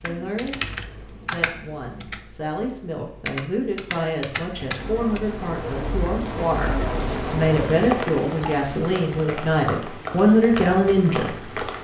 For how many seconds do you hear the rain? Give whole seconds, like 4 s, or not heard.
7 s.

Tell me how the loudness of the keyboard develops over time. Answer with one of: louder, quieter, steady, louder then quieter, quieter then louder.
quieter then louder.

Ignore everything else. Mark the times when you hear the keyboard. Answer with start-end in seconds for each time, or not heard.
0.0-5.2.